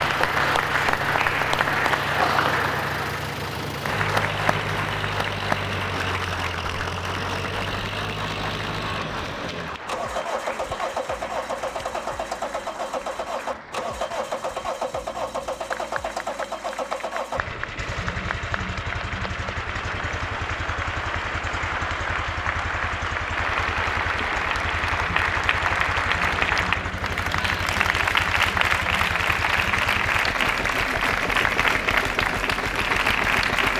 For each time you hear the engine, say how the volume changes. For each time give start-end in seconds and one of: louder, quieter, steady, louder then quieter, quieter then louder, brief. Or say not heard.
0.0-33.7 steady.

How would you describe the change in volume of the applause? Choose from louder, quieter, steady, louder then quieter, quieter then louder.
quieter then louder.